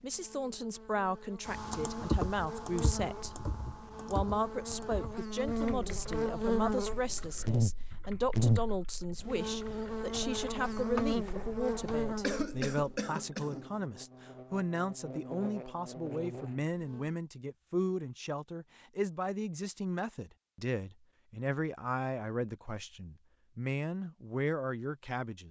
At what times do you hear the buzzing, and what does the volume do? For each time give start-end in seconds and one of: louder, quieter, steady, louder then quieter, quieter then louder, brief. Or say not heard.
0.0-17.1 louder then quieter.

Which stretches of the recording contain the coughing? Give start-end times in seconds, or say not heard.
12.2-13.7.